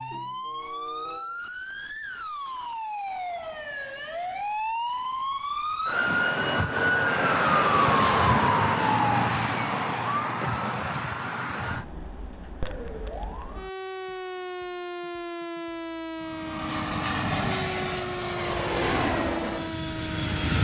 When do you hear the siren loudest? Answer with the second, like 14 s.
8 s.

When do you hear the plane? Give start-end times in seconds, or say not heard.
16.1-20.5.